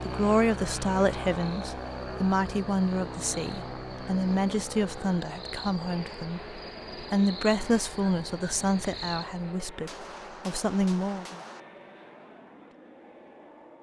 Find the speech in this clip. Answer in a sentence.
You can hear the speech from 0.1 to 11.4 s.